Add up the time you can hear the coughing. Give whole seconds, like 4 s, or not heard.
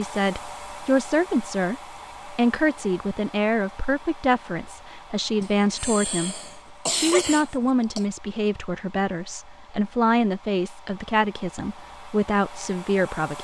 3 s.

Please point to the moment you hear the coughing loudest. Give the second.
7 s.